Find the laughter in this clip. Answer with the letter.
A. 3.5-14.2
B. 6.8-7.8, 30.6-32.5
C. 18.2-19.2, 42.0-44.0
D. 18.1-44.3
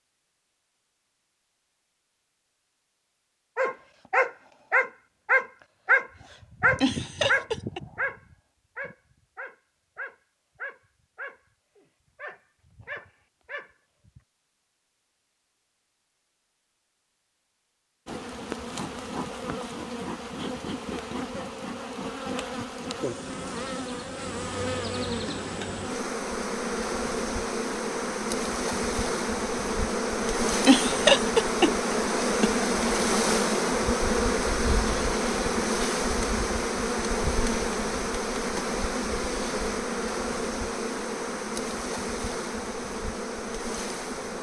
B.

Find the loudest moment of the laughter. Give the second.
31 s.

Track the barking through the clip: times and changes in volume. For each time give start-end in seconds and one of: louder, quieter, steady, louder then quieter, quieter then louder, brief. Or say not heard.
3.5-14.2 quieter.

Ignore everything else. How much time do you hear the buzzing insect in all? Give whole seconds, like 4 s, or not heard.
26 s.